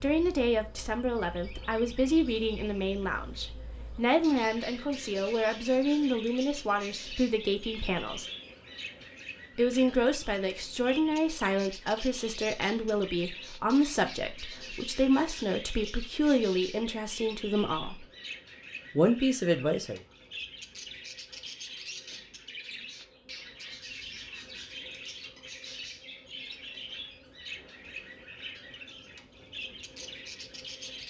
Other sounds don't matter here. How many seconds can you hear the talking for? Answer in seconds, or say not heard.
18 s.